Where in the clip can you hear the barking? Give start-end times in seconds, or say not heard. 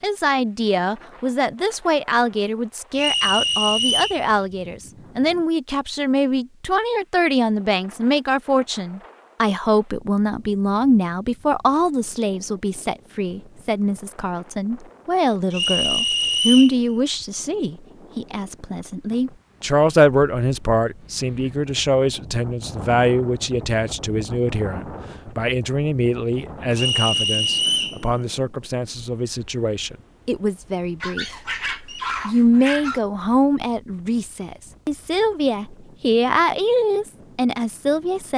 31.0-33.0.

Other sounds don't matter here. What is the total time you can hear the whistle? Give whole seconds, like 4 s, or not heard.
4 s.